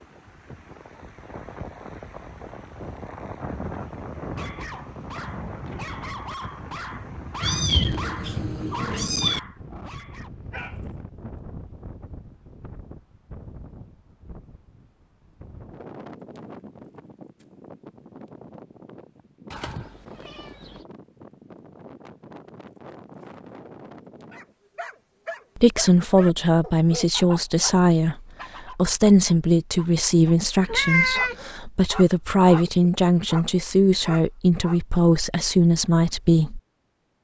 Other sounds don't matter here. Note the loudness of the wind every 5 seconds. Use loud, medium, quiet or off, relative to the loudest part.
loud, loud, medium, medium, medium, off, off, off.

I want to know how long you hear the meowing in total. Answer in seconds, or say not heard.
4 s.